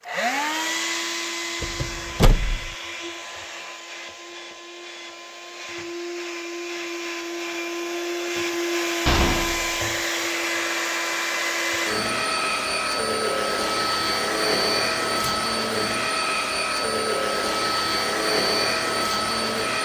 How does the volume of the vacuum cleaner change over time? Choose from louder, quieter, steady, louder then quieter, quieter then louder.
louder.